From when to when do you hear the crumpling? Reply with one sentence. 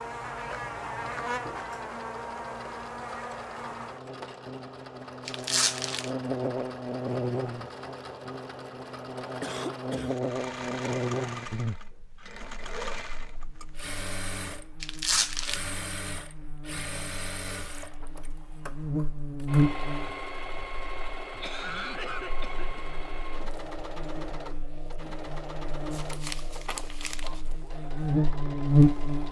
The crumpling can be heard from 5.2 to 6.1 s, from 14.8 to 15.6 s and from 25.9 to 27.4 s.